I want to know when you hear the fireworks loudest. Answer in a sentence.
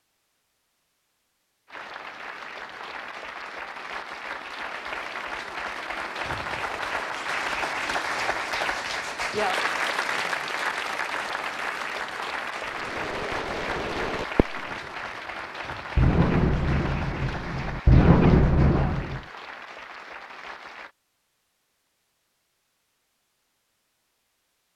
The volume of the fireworks peaks at 18 seconds.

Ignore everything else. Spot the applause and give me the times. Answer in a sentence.
You can hear the applause from 1.6 to 20.9 s.